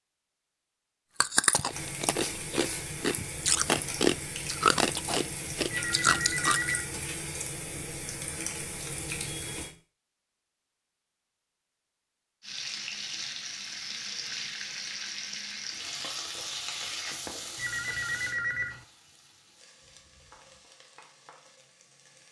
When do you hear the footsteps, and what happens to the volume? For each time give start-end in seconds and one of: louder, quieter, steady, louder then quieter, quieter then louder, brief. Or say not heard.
not heard.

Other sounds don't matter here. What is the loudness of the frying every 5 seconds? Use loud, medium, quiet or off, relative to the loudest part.
loud, loud, loud, loud, quiet.